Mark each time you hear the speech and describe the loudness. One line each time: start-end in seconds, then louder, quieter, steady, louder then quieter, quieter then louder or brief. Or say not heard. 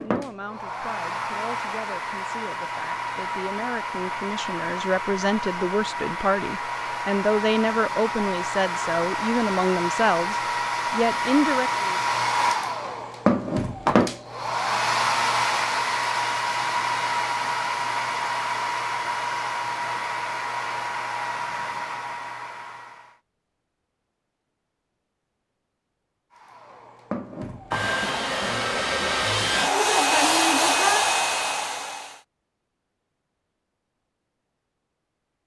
0.0-12.0 louder.